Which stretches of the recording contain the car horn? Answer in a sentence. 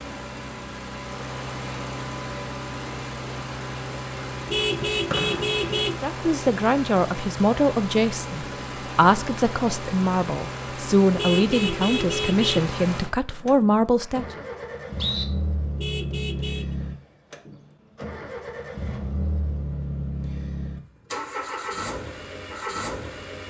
The car horn can be heard from 4.5 to 6.0 s, from 11.2 to 12.7 s and from 15.8 to 16.8 s.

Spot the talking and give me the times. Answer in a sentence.
The talking can be heard from 6.0 to 14.4 s.